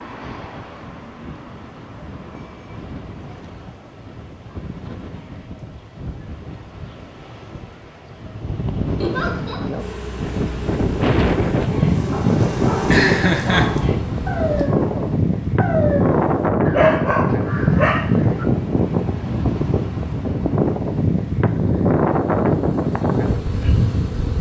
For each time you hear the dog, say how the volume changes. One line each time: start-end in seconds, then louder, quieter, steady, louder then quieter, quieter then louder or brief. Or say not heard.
11.7-18.4 louder.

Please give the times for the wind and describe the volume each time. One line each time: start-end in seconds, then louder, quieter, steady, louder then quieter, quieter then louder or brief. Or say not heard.
0.0-24.3 louder.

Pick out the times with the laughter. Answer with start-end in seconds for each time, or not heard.
8.9-9.6, 12.8-13.7.